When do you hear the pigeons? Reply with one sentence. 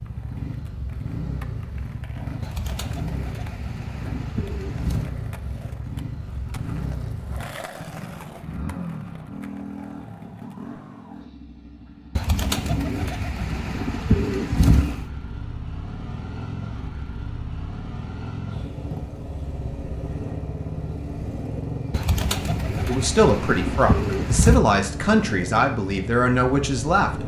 The pigeons can be heard from 2.4 to 5.1 s, from 12.2 to 15.1 s and from 21.9 to 24.6 s.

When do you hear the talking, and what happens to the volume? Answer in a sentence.
The talking can be heard from 22.9 to 27.2 s, at a steady volume.